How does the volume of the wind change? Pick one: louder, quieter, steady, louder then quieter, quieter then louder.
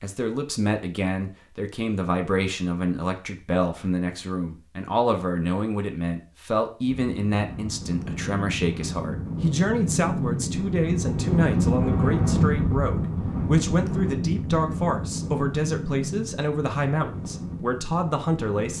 louder then quieter.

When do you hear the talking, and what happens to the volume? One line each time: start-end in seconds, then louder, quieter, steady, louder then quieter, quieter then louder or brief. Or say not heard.
0.0-18.7 steady.